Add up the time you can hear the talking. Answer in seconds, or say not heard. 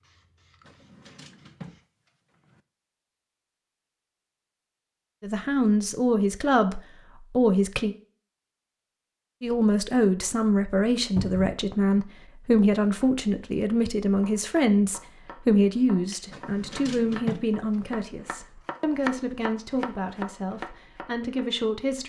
15 s.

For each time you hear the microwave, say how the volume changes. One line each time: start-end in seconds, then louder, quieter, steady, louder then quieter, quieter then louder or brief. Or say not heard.
not heard.